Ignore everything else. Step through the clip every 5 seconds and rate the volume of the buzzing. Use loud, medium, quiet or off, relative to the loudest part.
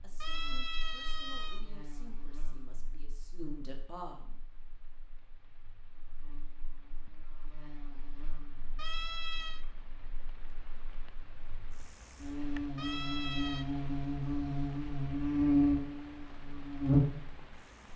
quiet, quiet, medium, loud.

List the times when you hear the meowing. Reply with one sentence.
The meowing can be heard from 0.2 to 1.6 s, from 8.8 to 9.7 s and from 12.8 to 13.7 s.